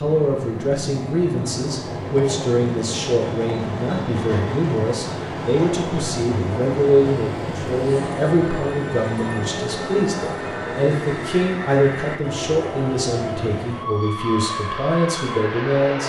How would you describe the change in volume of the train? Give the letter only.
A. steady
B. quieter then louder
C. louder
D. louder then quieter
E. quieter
A.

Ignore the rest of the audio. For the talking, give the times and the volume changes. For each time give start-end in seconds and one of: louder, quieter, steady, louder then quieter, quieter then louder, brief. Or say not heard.
0.0-16.0 steady.